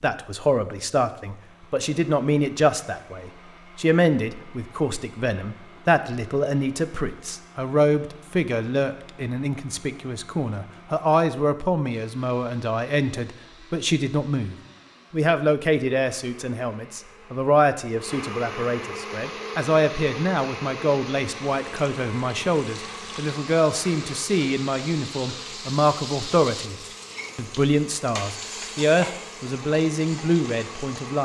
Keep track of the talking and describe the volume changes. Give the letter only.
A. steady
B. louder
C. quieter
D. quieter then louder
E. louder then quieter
A.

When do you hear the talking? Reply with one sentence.
You can hear the talking from 0.0 to 26.8 s and from 27.4 to 31.1 s.